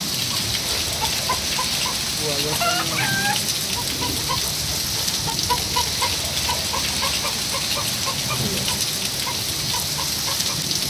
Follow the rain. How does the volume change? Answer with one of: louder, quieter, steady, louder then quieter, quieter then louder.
steady.